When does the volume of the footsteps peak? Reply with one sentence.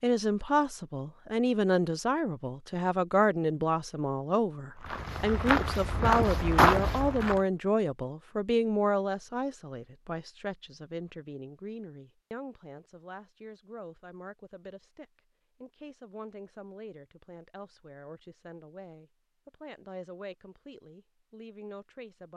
The volume of the footsteps peaks at 7 seconds.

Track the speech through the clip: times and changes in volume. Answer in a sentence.
The speech can be heard from 0.0 to 22.3 s, getting quieter.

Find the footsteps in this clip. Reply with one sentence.
You can hear the footsteps from 4.8 to 7.4 s.